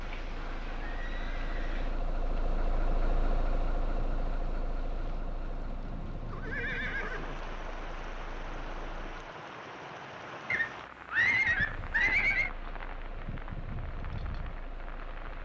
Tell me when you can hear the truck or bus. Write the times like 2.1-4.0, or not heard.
0.0-9.3, 11.7-15.3.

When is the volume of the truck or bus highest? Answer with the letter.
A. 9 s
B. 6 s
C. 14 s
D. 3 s
D.